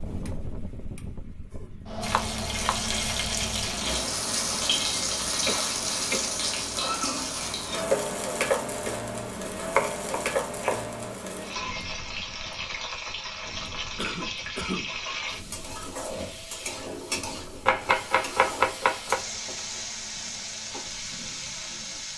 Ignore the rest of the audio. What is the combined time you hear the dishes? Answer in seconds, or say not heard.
not heard.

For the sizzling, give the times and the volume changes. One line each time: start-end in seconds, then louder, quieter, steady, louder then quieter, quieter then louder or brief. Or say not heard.
2.0-22.1 quieter.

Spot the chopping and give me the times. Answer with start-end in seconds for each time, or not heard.
2.1-2.9, 9.8-10.9, 17.6-19.2.